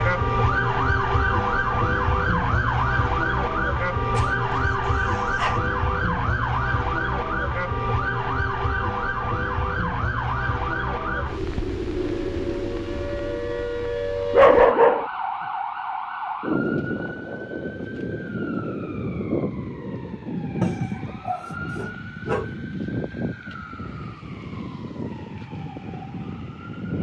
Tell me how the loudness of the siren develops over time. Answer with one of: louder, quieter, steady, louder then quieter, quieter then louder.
quieter.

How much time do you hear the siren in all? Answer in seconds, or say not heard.
27 s.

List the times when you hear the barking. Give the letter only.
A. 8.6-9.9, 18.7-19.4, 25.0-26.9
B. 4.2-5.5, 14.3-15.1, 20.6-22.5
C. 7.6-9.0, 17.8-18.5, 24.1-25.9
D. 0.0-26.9
B.